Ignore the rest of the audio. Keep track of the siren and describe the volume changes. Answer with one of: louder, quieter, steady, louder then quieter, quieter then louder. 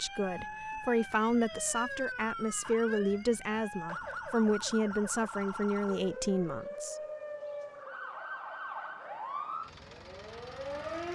steady.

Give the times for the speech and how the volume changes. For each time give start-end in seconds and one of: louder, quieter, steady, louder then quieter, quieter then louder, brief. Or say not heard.
0.0-7.0 steady.